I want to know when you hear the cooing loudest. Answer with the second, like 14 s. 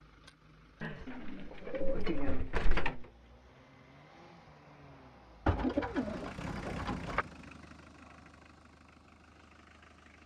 6 s.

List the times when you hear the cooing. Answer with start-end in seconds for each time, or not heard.
0.8-3.0, 5.5-7.2.